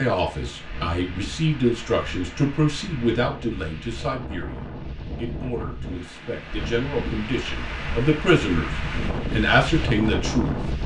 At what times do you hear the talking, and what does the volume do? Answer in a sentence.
The talking can be heard from 0.0 to 8.7 s, getting quieter then louder; and briefly from 9.3 to 10.6 s.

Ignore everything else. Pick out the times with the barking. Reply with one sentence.
The barking can't be heard in this clip.